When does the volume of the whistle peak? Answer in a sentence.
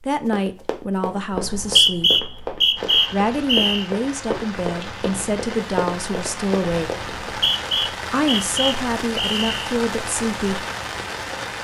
The volume of the whistle peaks at 2 seconds.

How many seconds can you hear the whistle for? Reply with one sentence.
You can hear the whistle for 5 seconds altogether.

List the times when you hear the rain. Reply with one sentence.
The rain can be heard from 2.8 to 11.5 s.